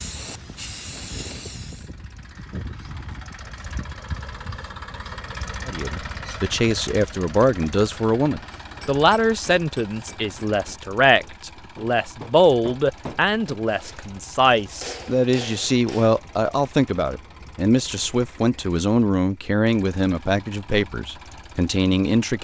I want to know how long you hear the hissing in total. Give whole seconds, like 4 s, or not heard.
2 s.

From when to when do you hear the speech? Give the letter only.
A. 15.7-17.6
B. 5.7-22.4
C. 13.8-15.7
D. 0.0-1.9
B.